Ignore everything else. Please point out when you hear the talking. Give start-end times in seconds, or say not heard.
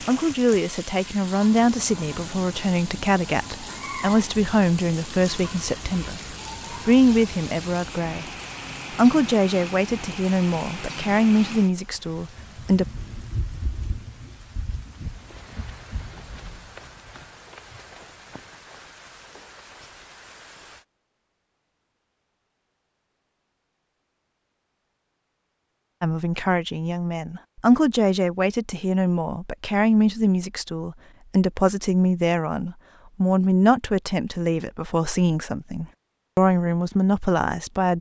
0.0-8.3, 8.9-12.8, 26.0-37.9.